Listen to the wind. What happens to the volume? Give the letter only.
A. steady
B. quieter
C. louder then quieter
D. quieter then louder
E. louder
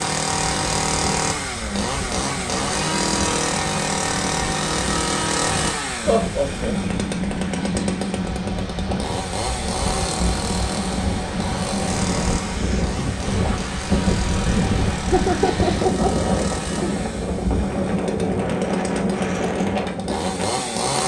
E.